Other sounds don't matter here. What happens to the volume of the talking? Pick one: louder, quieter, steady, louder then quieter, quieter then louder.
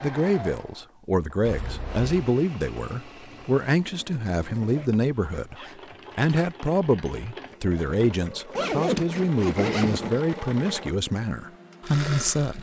steady.